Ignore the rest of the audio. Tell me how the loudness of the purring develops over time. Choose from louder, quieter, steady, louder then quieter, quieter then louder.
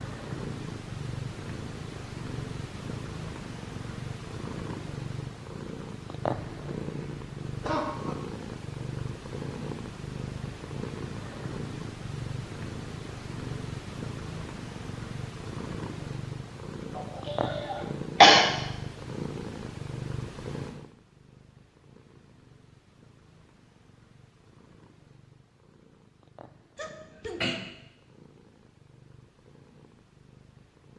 quieter.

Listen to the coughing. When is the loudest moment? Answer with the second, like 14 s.
18 s.